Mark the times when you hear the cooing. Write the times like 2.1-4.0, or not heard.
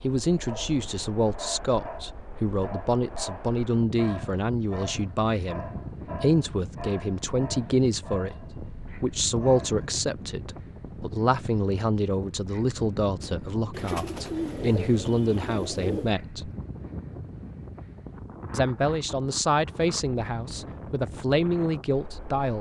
13.7-16.1.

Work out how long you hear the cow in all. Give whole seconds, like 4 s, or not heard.
not heard.